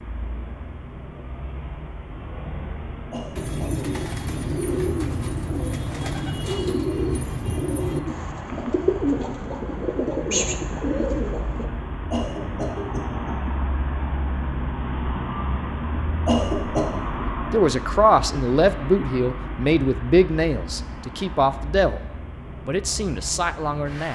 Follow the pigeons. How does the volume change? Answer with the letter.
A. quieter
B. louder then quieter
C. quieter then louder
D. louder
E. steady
E.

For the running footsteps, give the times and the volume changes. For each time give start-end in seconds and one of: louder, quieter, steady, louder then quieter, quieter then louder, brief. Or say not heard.
not heard.